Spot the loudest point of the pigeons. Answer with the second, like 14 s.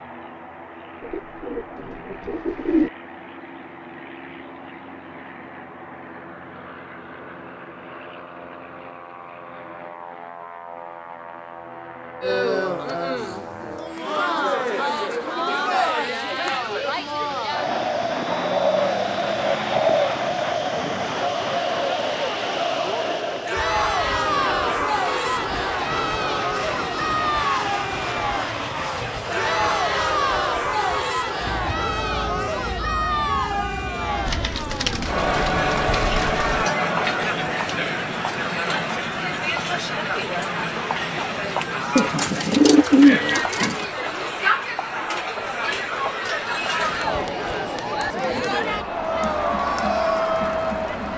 43 s.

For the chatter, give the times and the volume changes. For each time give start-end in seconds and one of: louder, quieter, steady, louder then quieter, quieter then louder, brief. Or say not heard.
12.2-51.1 steady.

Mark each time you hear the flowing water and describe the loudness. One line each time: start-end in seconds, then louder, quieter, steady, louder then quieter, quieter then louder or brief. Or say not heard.
not heard.